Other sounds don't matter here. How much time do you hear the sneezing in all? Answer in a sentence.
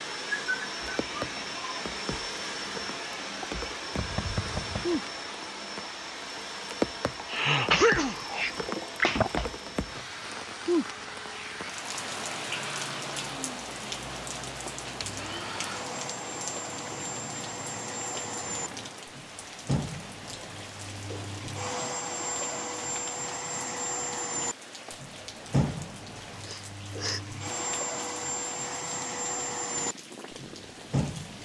The sneezing can be heard for 3 seconds in total.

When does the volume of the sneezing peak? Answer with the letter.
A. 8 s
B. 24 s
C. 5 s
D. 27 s
A.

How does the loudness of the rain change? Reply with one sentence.
The volume of the rain goes down.